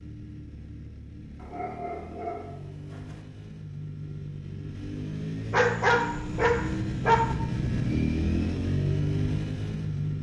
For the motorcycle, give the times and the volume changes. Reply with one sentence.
You can hear the motorcycle from 0.0 to 10.1 s, getting louder.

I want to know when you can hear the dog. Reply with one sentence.
The dog can be heard from 1.4 to 3.2 s and from 5.5 to 7.3 s.